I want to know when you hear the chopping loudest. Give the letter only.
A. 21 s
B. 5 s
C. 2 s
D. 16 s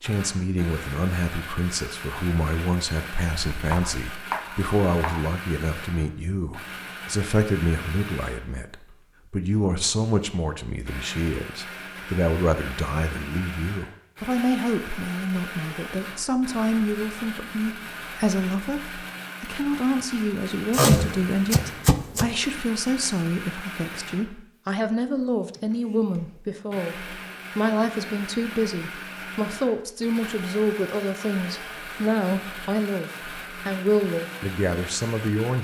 A.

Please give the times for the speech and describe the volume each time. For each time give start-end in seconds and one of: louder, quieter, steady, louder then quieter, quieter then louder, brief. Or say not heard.
0.0-35.5 steady.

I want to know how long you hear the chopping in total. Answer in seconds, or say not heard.
3 s.